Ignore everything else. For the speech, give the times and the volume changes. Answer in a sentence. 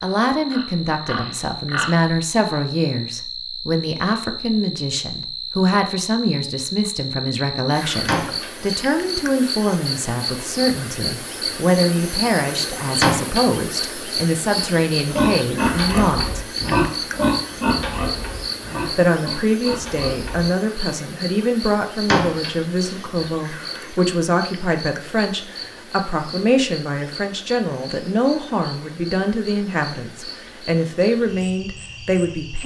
The speech can be heard from 0.0 to 16.4 s, at a steady volume; and from 18.9 to 32.6 s, at a steady volume.